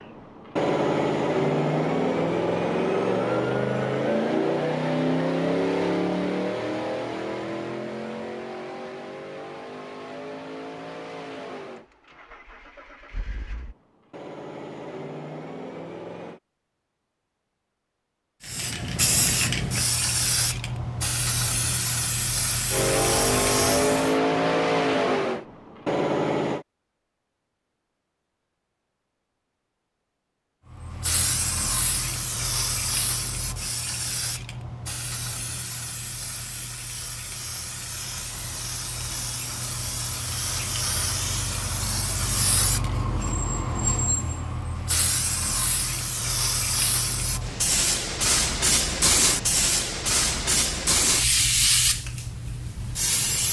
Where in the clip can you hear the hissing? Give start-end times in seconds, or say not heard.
18.4-24.1, 30.7-53.4.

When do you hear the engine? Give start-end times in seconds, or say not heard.
0.0-16.4, 22.7-26.6.